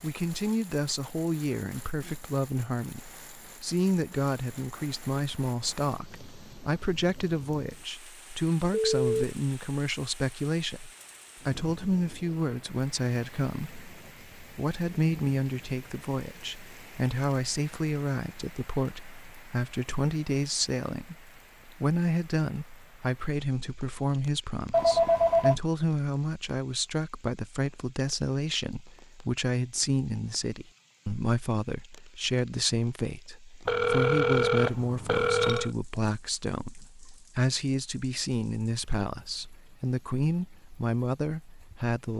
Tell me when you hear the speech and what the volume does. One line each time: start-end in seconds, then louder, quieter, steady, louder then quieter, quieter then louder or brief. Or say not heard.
0.0-42.1 steady.